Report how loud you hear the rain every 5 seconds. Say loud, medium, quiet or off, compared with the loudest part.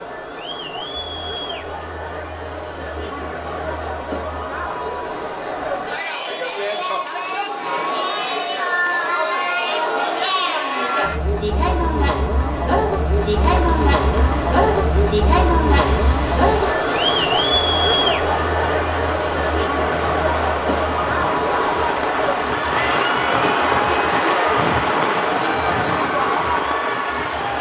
off, off, medium, medium, loud, loud.